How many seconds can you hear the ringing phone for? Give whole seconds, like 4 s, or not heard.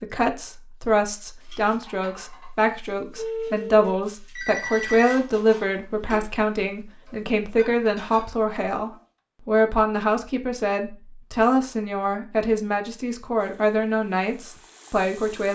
2 s.